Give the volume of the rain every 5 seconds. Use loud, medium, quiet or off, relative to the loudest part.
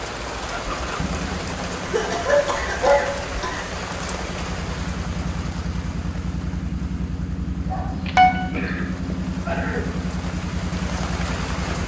loud, medium, loud.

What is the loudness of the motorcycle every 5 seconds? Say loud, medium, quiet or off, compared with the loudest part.
medium, loud, loud.